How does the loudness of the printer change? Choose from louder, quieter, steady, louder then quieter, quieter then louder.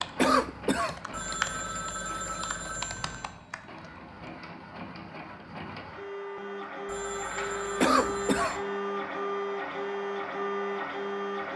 louder.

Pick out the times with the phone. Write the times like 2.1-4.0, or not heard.
1.1-3.4, 6.8-8.5.